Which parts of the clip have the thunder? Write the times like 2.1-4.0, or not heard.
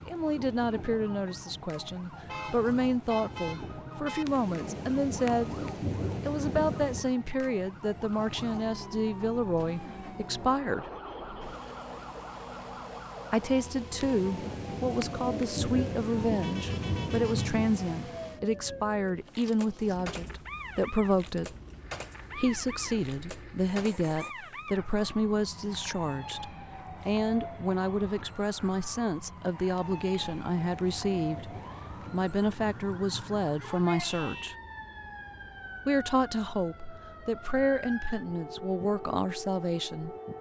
4.2-7.1, 14.0-18.2, 29.8-34.3.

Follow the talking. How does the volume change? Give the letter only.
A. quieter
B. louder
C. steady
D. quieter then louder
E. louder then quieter
C.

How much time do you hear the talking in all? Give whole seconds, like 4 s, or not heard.
35 s.